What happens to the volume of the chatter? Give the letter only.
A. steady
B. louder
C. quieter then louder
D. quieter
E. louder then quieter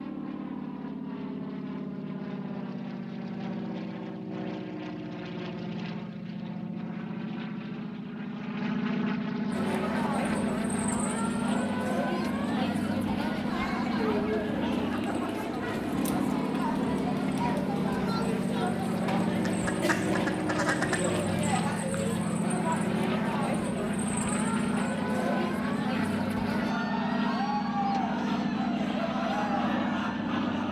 A.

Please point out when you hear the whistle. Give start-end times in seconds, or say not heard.
not heard.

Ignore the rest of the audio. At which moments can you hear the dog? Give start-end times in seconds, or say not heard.
not heard.